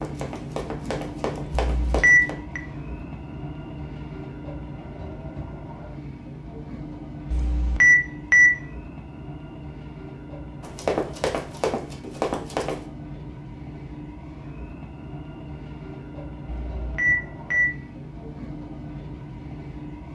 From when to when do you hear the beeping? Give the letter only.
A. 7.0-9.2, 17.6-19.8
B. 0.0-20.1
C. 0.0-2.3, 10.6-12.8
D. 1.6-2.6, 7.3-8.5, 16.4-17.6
D.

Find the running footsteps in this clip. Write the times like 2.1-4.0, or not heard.
0.0-2.3, 10.6-12.8.